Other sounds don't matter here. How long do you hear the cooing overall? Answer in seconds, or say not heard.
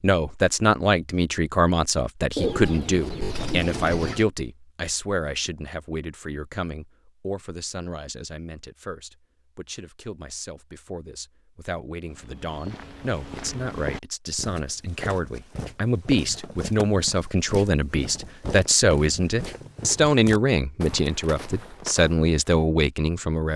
2 s.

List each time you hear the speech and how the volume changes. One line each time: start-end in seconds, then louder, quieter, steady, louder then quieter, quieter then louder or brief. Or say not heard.
0.0-23.5 quieter then louder.